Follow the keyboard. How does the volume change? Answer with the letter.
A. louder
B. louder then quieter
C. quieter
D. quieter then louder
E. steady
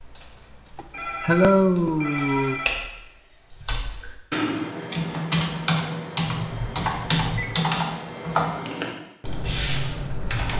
A.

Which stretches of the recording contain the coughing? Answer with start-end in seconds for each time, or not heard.
0.8-2.6.